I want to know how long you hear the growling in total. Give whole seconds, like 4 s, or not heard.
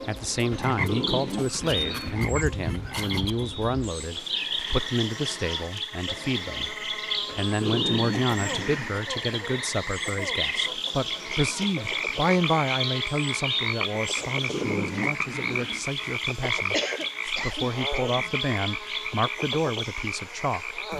5 s.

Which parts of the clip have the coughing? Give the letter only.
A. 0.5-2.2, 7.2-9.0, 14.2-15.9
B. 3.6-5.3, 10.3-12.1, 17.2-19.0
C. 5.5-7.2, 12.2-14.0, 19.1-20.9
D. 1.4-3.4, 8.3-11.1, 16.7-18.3
D.